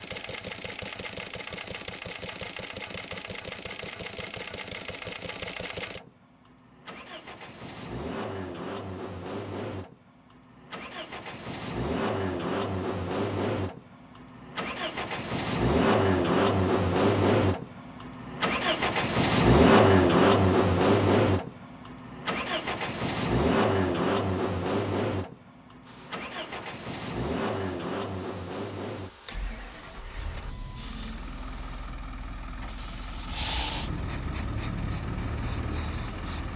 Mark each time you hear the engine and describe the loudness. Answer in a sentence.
You can hear the engine from 0.0 to 36.5 s, getting louder then quieter.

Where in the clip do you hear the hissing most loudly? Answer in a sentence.
The loudest moment of the hissing is at 34 seconds.